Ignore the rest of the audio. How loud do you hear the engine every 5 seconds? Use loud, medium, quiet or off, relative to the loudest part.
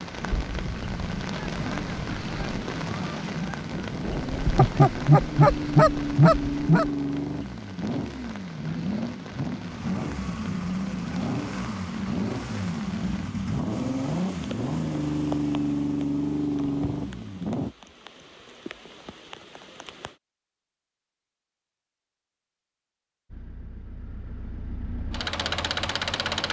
medium, loud, loud, loud, quiet, loud.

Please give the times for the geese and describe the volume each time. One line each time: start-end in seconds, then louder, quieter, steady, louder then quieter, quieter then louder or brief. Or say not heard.
0.2-6.9 louder.